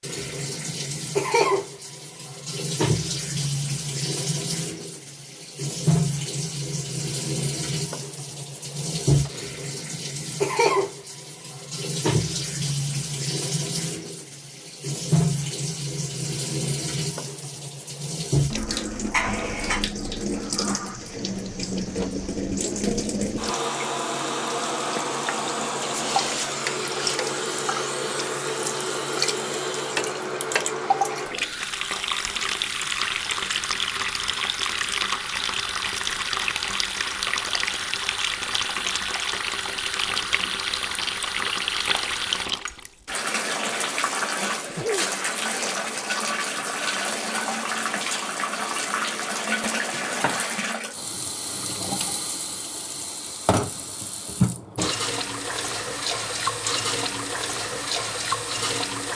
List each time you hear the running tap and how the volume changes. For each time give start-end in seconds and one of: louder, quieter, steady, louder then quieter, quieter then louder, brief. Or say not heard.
0.0-59.1 steady.